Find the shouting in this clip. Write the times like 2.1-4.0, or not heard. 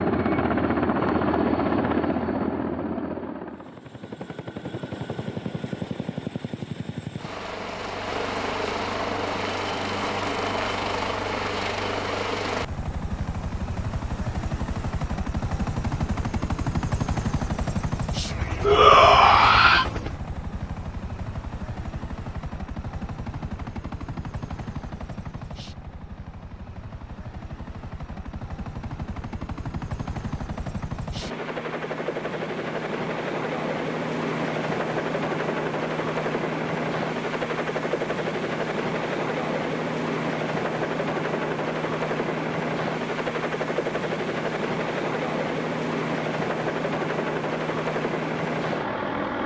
18.6-19.9.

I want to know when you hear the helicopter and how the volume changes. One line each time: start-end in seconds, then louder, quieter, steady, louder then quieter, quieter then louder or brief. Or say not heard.
0.0-49.4 quieter then louder.